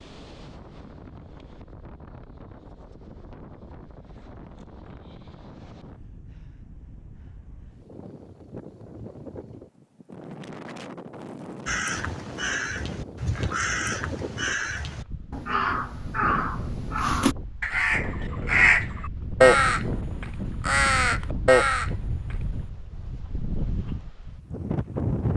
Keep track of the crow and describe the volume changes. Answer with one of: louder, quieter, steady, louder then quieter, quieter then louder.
louder.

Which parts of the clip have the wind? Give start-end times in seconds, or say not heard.
0.0-25.3.